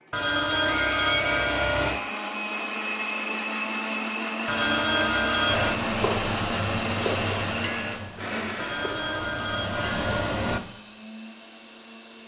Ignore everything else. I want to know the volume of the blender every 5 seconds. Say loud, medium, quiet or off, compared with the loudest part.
loud, loud, quiet.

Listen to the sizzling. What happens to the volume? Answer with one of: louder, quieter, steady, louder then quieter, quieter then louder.
quieter then louder.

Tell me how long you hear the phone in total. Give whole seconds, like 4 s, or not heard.
5 s.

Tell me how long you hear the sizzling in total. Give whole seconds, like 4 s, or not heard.
5 s.